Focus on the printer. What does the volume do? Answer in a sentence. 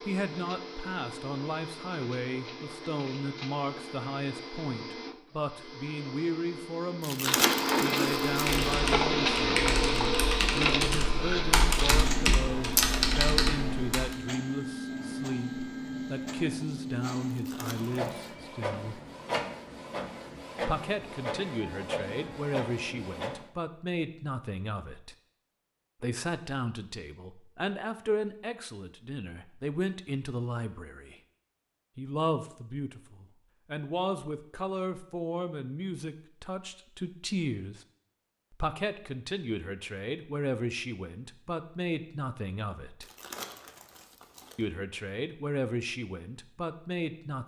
The loudness of the printer goes up, then down.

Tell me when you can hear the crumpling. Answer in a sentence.
You can hear the crumpling from 7.0 to 8.8 s, from 17.3 to 18.1 s and from 43.0 to 44.6 s.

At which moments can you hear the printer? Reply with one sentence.
You can hear the printer from 0.0 to 23.4 s.